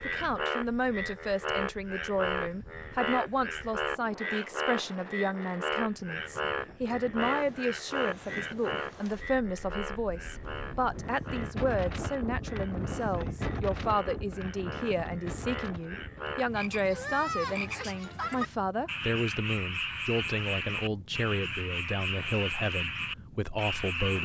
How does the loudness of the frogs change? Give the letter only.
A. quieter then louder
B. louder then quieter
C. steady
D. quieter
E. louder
A.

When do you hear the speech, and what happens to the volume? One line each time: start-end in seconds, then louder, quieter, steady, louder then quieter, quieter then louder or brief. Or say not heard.
0.0-24.2 steady.